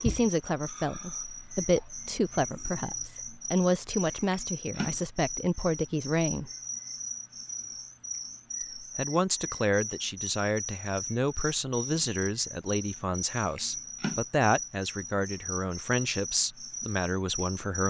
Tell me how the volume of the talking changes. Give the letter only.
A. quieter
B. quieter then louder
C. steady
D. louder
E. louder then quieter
C.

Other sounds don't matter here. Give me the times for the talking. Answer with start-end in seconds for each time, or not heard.
0.0-6.5, 8.8-17.8.